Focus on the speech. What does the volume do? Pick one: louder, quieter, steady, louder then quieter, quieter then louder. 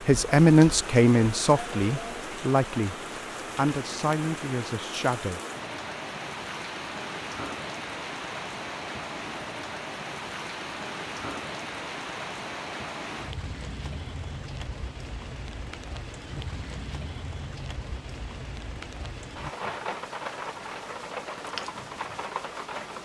quieter.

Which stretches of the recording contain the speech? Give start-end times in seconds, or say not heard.
0.1-5.4.